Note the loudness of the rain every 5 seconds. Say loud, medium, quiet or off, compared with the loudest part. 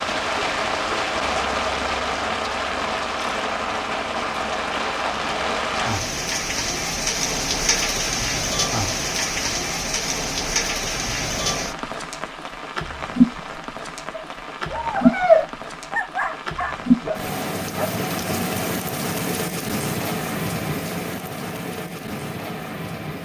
loud, loud, loud, loud, medium.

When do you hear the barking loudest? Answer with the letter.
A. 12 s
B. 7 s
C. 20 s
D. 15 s
D.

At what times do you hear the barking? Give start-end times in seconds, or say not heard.
14.1-18.1.